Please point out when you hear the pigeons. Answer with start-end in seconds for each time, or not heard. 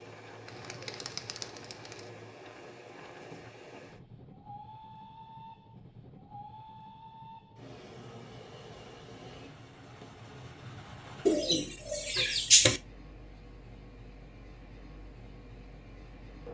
0.5-2.1, 11.2-12.8.